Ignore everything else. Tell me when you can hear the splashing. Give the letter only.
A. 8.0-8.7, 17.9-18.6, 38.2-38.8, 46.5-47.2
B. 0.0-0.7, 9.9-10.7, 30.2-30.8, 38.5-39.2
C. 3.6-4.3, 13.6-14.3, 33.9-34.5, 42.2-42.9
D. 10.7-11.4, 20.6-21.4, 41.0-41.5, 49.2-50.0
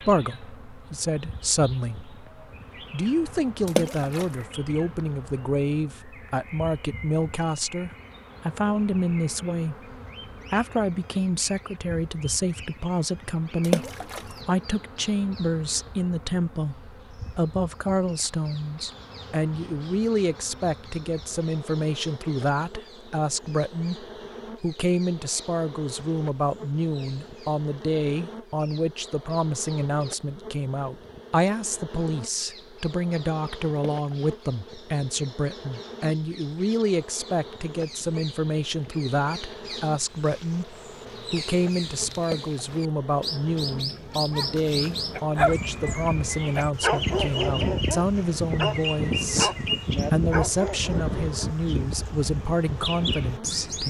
C.